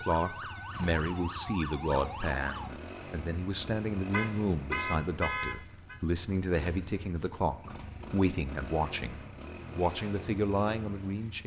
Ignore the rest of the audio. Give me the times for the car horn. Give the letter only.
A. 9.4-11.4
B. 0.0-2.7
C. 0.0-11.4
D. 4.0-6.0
D.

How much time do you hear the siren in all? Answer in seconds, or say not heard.
3 s.